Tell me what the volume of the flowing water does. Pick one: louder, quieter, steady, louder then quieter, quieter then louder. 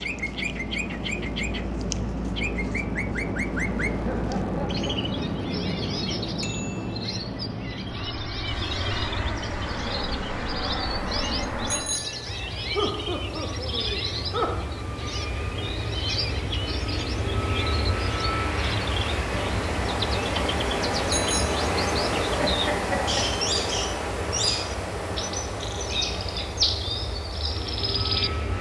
louder then quieter.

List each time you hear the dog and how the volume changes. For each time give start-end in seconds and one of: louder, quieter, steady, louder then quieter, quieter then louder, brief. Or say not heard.
not heard.